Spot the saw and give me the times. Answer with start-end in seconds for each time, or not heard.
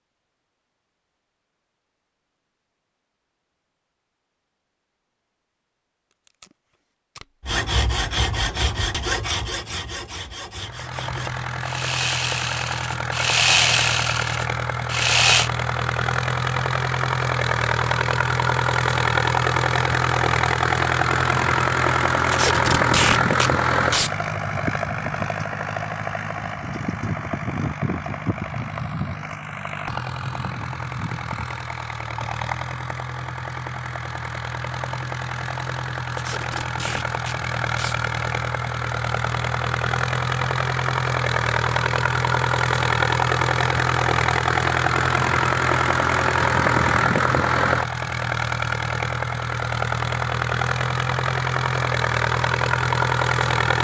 7.4-15.5.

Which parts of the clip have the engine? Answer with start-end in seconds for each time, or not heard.
10.6-53.7.